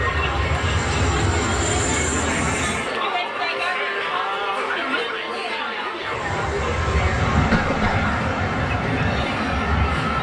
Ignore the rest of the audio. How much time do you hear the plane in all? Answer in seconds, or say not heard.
7 s.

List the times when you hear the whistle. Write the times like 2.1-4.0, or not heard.
not heard.